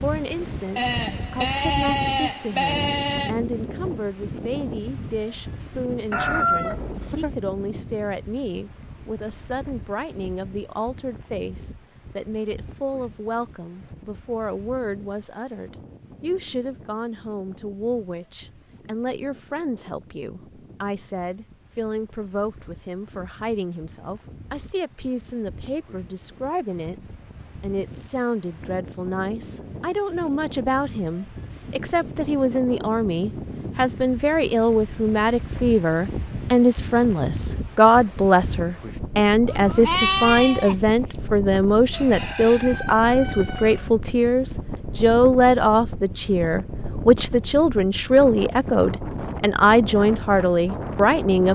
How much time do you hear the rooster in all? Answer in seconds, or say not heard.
3 s.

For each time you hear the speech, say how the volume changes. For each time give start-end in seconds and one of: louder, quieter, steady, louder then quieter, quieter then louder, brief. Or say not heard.
0.0-51.4 louder.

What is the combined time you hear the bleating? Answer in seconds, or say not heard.
4 s.